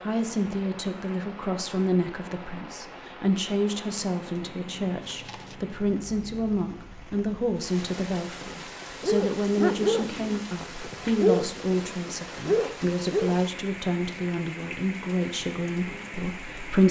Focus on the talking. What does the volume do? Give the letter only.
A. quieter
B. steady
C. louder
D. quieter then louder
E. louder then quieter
B.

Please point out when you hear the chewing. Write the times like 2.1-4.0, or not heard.
5.0-5.6.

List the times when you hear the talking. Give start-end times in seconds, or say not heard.
0.0-16.8.